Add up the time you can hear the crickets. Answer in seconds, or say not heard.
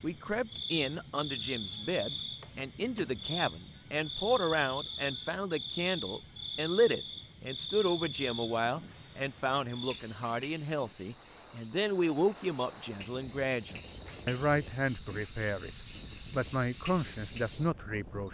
18 s.